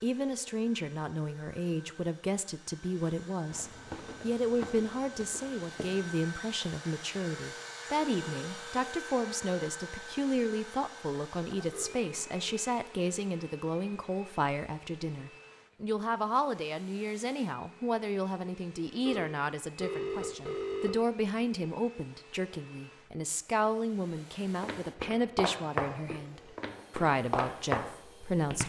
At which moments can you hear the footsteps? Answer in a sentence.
You can hear the footsteps from 3.5 to 6.2 s and from 24.5 to 28.6 s.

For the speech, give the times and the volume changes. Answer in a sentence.
You can hear the speech from 0.0 to 28.6 s, at a steady volume.